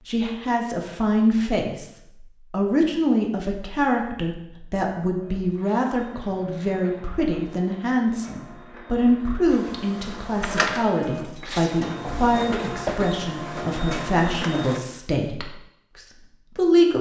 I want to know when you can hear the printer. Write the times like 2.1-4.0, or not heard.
5.2-14.8.